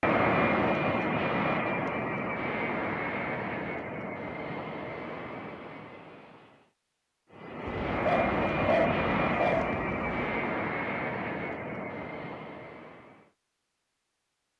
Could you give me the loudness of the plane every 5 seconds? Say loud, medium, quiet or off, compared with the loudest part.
loud, loud, medium.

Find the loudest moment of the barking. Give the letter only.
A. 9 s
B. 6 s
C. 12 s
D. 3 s
A.